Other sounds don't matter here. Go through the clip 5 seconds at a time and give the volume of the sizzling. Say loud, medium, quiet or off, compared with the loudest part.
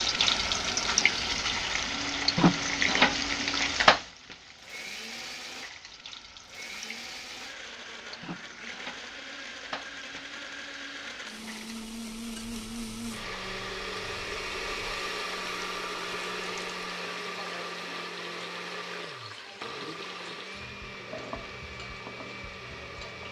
loud, quiet, quiet, quiet, quiet.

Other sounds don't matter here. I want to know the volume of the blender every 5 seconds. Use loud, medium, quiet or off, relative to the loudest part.
medium, medium, loud, loud, medium.